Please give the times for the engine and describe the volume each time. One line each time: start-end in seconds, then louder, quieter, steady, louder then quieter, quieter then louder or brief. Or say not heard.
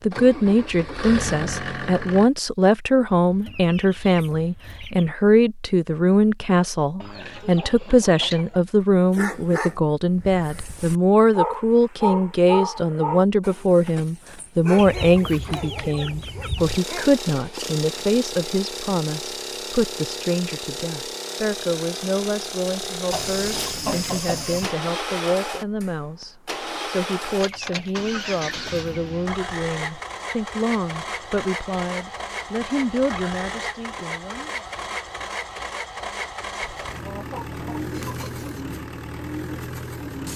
0.0-2.3 brief
16.6-40.3 steady.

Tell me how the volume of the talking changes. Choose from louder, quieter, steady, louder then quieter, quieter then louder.
quieter.